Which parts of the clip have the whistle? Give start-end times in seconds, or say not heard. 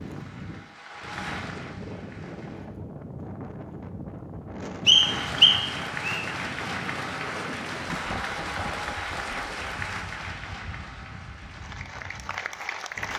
4.8-6.2.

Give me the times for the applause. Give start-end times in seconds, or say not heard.
0.0-2.7, 4.8-13.1.